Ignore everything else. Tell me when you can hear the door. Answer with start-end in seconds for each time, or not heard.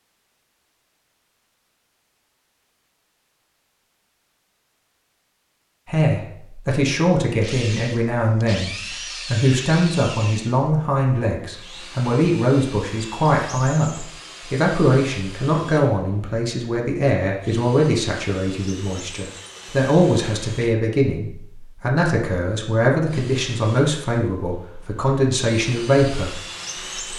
not heard.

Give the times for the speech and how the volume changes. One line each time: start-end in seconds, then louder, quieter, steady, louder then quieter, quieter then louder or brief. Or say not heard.
5.8-26.4 steady.